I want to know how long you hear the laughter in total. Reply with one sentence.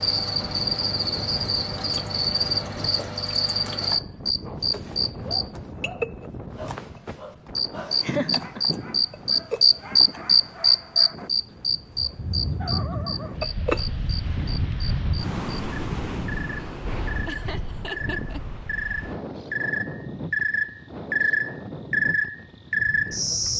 The laughter can be heard for 2 seconds in total.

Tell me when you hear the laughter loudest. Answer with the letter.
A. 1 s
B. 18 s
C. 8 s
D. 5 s
C.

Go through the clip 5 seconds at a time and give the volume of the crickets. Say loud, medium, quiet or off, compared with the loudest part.
loud, loud, loud, medium, loud.